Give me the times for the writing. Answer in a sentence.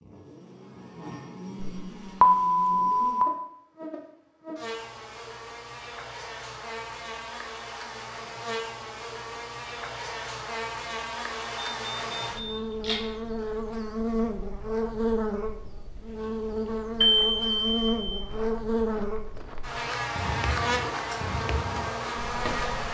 The writing can't be heard in this clip.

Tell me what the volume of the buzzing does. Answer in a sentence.
The loudness of the buzzing goes up.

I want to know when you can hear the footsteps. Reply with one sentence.
You can hear the footsteps from 18.2 to 22.8 s.